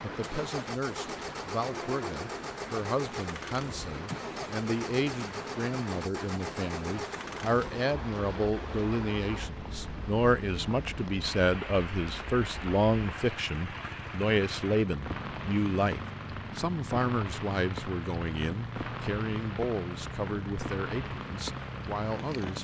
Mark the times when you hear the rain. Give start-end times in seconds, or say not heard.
0.0-22.5.